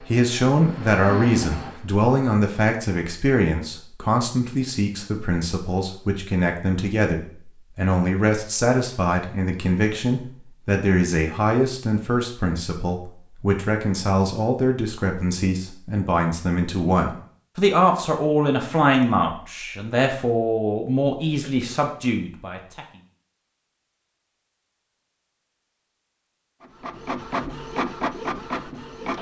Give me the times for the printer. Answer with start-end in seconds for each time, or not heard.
0.0-1.9, 26.6-29.1.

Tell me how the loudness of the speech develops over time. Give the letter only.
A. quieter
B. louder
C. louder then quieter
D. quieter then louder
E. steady
E.